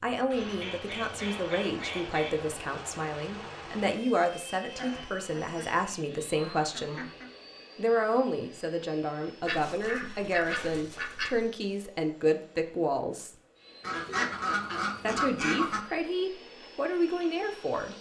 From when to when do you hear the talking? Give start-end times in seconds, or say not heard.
0.0-7.0, 7.8-13.3, 15.0-17.9.